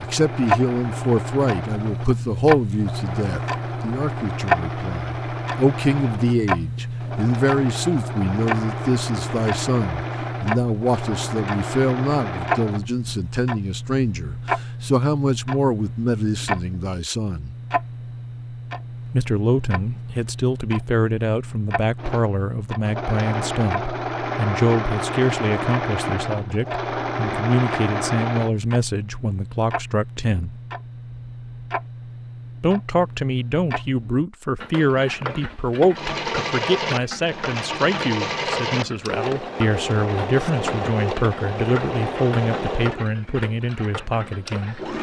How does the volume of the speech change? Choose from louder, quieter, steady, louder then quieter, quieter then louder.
steady.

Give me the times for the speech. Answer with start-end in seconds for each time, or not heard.
0.0-17.6, 19.1-30.6, 32.6-44.9.